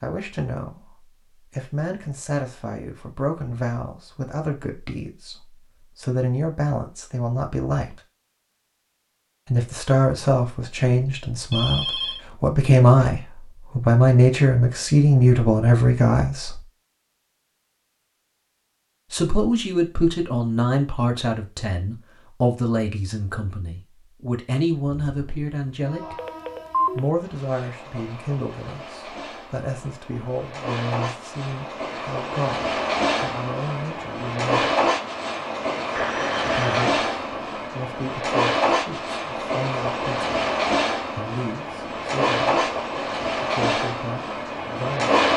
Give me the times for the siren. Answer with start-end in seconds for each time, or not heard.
not heard.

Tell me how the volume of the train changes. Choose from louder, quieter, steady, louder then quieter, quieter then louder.
louder.